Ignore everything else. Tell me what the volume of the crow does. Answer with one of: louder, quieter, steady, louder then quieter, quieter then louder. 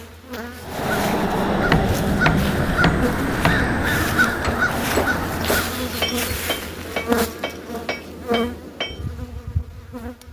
steady.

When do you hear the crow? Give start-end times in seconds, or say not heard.
0.6-5.9.